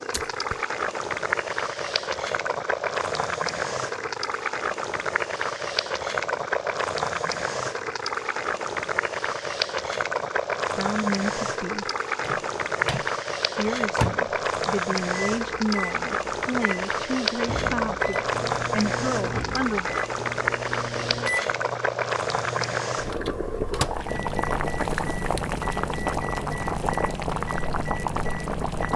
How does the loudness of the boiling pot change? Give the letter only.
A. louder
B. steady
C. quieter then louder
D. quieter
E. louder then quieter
B.